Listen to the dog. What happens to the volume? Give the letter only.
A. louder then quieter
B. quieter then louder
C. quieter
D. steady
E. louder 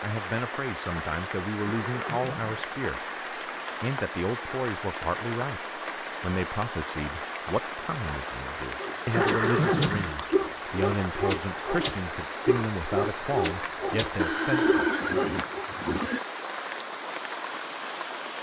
D.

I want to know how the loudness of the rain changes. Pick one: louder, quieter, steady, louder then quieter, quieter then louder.
steady.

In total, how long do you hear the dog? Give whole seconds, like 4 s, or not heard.
7 s.